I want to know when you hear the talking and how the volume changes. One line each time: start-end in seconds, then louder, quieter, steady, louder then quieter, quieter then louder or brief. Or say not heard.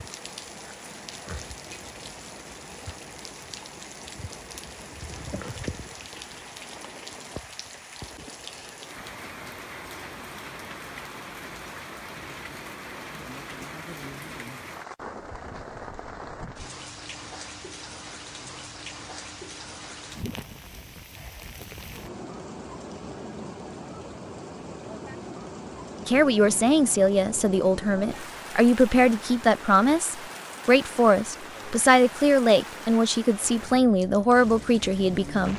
26.1-35.5 steady.